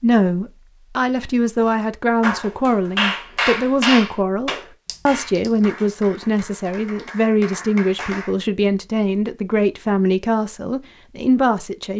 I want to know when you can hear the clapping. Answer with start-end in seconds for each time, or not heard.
2.2-8.3.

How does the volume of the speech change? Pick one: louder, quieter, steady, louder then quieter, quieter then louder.
steady.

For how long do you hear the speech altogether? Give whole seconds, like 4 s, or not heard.
12 s.